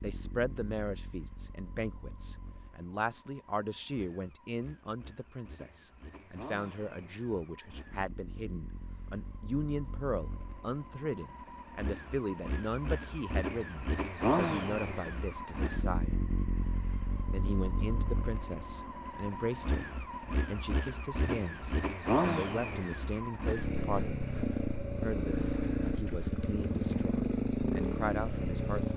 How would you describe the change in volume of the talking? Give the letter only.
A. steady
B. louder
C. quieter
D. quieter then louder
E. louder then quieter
A.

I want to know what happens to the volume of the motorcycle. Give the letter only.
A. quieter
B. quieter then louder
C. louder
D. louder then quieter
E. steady
C.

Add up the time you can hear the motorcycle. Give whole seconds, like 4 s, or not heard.
29 s.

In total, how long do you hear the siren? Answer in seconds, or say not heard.
not heard.